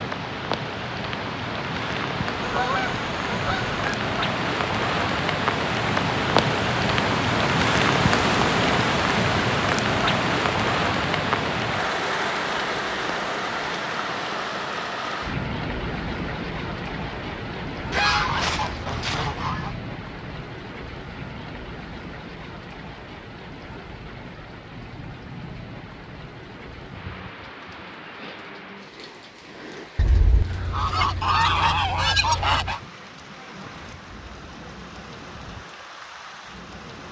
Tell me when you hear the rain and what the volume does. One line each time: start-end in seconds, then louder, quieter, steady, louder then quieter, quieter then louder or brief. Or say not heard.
0.0-37.0 quieter.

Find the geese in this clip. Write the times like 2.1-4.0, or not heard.
2.4-3.8, 17.9-19.7, 29.9-32.8.